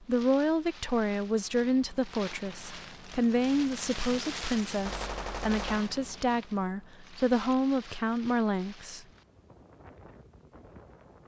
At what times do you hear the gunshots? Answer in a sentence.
You can hear the gunshots from 4.8 to 6.0 s.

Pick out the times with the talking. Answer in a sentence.
You can hear the talking from 0.0 to 9.1 s.